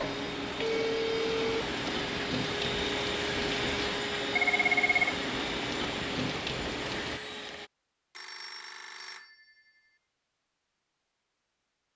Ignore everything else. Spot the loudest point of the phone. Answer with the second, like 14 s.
5 s.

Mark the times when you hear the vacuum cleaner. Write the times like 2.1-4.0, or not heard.
0.0-7.7.